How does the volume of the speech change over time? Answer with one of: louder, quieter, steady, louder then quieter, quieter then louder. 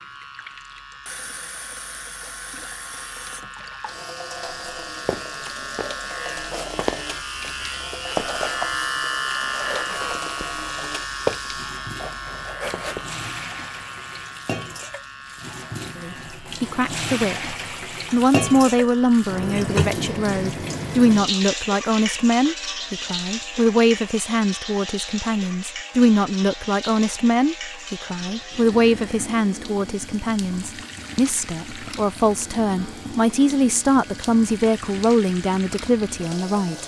steady.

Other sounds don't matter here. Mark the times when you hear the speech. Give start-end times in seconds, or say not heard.
15.9-36.8.